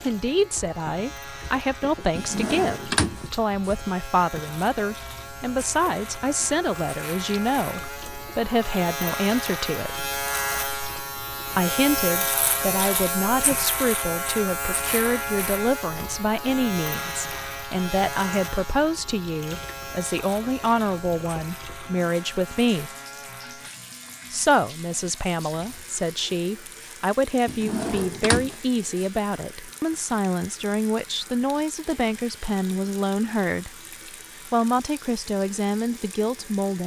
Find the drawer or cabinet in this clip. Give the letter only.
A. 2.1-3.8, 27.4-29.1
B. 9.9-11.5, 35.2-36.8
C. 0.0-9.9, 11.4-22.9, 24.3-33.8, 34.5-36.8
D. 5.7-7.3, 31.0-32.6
A.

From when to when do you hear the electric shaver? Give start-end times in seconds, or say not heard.
0.0-36.8.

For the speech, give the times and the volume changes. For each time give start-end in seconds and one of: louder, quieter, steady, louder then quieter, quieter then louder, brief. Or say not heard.
0.0-9.9 steady
11.4-22.9 steady
24.3-33.8 steady
34.5-36.8 brief.